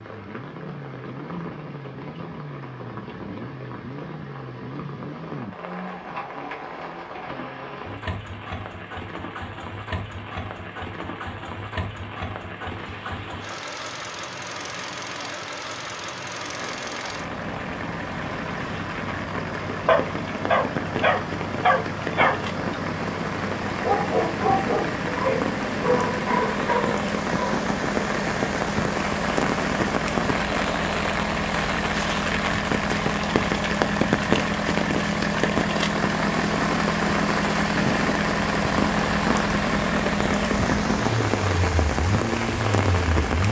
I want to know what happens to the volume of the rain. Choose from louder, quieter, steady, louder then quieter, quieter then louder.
louder.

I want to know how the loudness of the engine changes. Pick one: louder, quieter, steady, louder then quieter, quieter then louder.
louder.